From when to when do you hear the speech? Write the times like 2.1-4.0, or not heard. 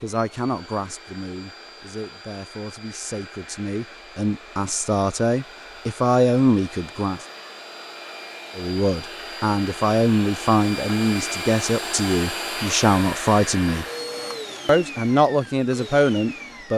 0.0-7.2, 8.6-13.8, 14.7-16.7.